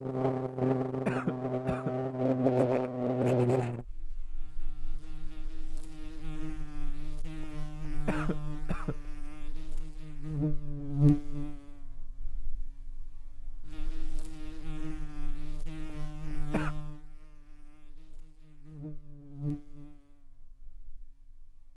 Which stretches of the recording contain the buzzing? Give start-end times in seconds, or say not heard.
0.0-21.7.